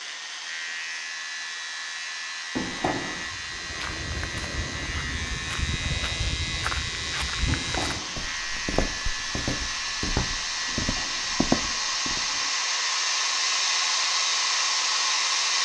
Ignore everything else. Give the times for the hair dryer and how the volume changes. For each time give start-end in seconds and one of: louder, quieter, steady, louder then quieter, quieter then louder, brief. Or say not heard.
0.0-15.6 louder.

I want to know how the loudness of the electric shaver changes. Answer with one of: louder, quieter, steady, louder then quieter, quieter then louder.
steady.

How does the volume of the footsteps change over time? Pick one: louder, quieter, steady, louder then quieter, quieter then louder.
louder.